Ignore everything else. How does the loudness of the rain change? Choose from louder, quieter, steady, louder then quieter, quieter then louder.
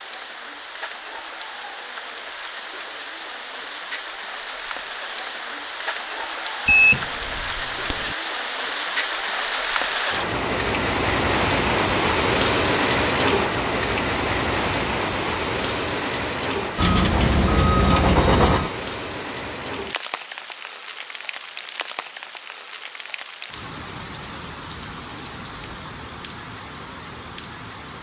louder then quieter.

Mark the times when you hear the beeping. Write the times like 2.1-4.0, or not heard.
6.7-8.2, 16.8-18.7.